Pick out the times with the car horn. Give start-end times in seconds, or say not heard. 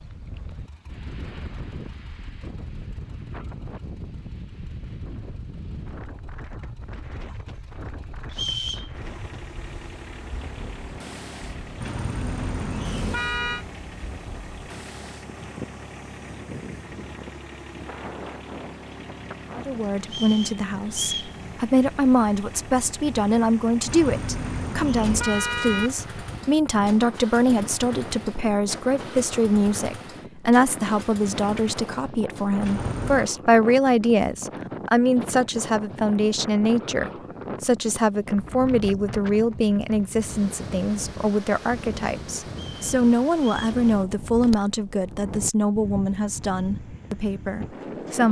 11.8-13.7, 23.9-25.9, 32.6-33.3.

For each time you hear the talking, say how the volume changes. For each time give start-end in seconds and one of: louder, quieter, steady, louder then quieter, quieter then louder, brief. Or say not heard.
19.6-48.2 steady.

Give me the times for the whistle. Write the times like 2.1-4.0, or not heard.
8.3-8.9, 20.1-21.4, 42.5-43.8.